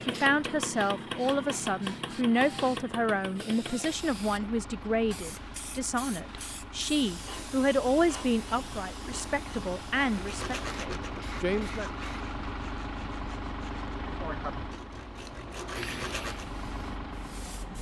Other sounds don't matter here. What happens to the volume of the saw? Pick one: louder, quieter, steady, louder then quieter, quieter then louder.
quieter then louder.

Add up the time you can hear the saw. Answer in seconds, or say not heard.
6 s.